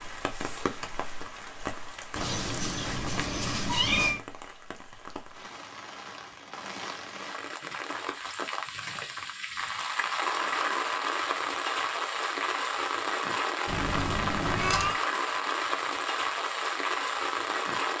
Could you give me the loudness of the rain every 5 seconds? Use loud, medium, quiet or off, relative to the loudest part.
medium, medium, loud, loud.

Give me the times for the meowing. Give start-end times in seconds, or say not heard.
2.1-4.2, 13.7-15.0.